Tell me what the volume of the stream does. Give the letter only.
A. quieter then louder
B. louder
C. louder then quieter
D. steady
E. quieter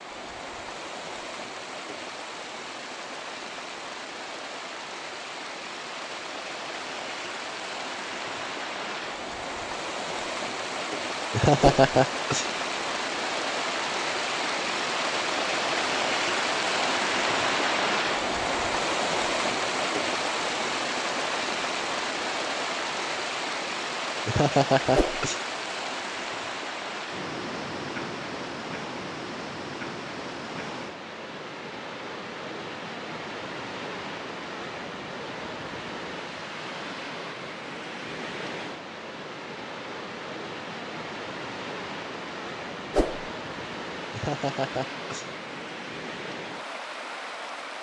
C.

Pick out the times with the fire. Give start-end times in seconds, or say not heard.
not heard.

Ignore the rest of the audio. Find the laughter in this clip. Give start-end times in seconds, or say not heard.
11.3-12.5, 24.2-25.4, 44.1-45.3.